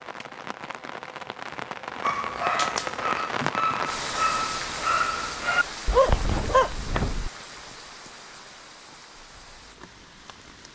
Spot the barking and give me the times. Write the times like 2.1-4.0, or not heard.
2.0-7.3.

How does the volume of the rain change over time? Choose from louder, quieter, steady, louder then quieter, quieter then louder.
louder then quieter.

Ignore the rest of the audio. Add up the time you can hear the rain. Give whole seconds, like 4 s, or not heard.
11 s.